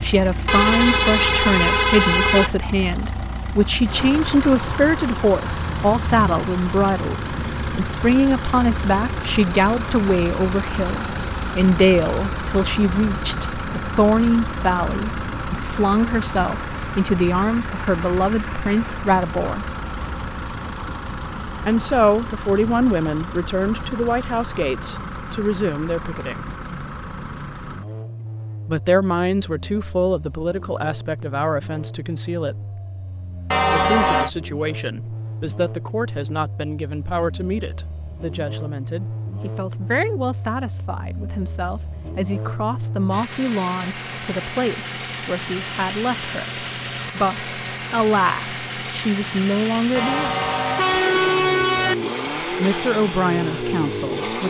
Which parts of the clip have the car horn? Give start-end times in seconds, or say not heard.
0.5-2.5, 33.5-34.3, 50.0-52.0.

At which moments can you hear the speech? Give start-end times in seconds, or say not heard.
0.0-19.6, 21.6-26.4, 28.6-32.8, 33.7-50.3, 52.2-54.4.